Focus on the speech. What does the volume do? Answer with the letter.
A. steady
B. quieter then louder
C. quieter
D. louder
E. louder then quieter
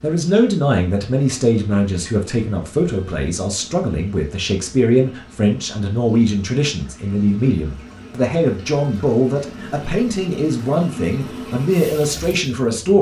A.